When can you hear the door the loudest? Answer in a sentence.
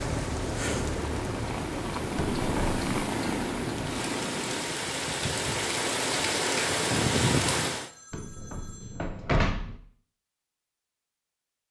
The loudest moment of the door is at 9 seconds.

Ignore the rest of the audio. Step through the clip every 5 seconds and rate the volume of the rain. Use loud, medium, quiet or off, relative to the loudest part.
medium, loud, off.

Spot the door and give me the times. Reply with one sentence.
The door can be heard from 2.1 to 3.1 s and from 8.1 to 9.8 s.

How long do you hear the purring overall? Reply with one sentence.
You can hear the purring for 5 seconds altogether.